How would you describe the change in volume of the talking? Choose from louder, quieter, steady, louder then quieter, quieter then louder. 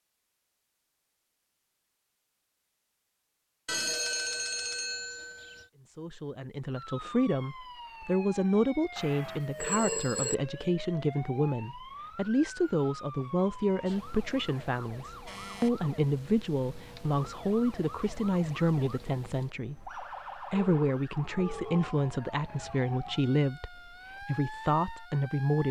steady.